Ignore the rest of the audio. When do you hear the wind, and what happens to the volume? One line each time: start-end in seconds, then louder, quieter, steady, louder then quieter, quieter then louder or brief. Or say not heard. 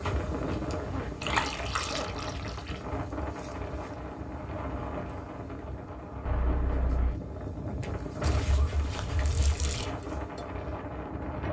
0.0-11.4 steady.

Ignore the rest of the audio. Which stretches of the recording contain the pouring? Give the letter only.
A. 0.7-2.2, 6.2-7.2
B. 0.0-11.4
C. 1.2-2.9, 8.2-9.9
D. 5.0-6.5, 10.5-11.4
C.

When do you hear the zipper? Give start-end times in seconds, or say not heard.
0.7-2.2, 6.2-7.2.